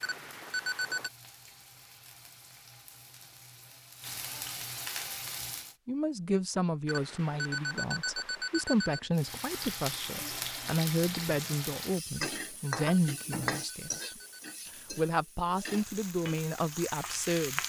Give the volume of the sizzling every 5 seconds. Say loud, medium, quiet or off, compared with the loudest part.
medium, loud, loud, loud.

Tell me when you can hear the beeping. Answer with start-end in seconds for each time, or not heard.
0.0-1.1, 6.8-9.1, 12.3-14.8.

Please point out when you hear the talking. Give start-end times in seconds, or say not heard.
5.8-14.1, 14.9-17.6.